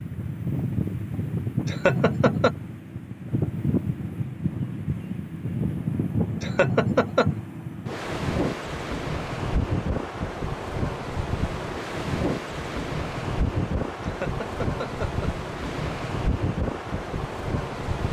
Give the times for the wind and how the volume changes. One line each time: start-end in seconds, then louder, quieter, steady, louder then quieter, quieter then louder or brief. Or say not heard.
0.0-18.0 steady.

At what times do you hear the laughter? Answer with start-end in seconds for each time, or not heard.
1.6-2.5, 6.4-7.3, 14.0-15.2.